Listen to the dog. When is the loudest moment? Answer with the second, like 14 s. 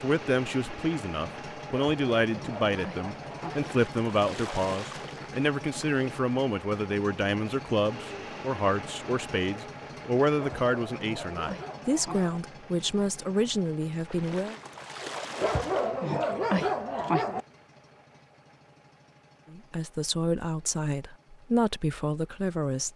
17 s.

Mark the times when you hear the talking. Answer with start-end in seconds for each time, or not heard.
0.0-14.6, 19.5-22.9.